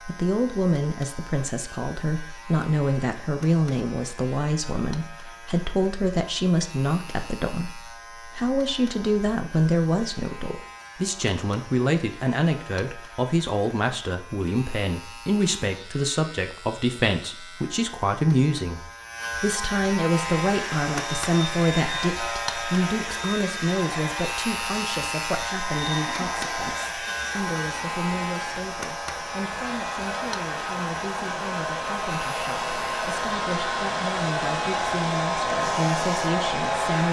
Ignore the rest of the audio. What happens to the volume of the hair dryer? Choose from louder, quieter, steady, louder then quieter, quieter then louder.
louder.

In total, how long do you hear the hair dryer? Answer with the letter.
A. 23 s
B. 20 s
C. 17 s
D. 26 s
C.